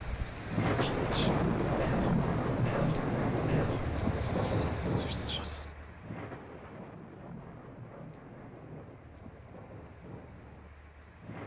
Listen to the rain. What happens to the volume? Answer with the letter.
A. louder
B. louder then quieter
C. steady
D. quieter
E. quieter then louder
D.